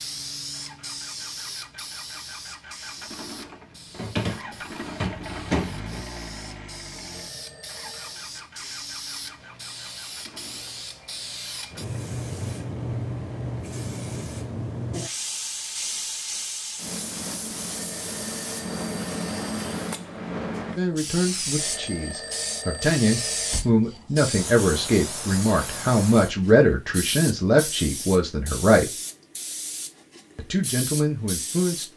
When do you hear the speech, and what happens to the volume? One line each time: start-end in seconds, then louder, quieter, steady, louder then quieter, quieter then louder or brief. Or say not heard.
20.8-28.9 louder
30.4-31.9 brief.